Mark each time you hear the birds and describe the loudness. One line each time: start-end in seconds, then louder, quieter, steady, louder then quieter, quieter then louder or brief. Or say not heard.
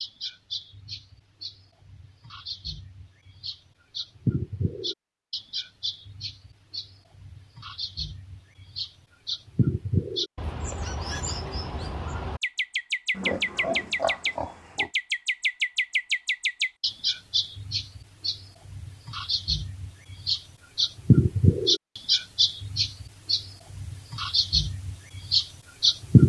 0.0-26.2 louder.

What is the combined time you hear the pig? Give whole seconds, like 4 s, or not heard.
2 s.